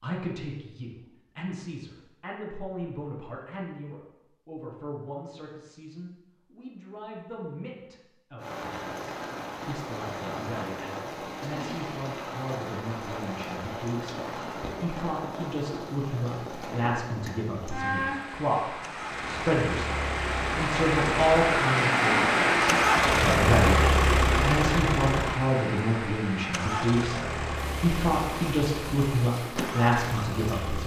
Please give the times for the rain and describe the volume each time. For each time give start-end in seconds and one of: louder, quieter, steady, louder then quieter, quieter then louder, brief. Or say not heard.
8.4-30.8 louder then quieter.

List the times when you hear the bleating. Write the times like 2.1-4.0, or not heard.
not heard.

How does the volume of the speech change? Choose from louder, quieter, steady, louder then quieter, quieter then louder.
louder.